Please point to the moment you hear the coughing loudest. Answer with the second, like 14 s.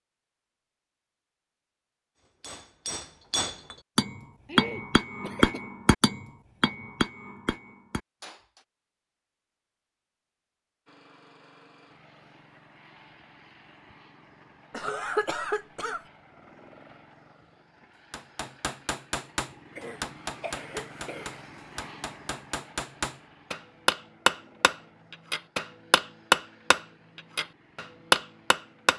15 s.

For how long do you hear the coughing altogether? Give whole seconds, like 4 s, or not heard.
4 s.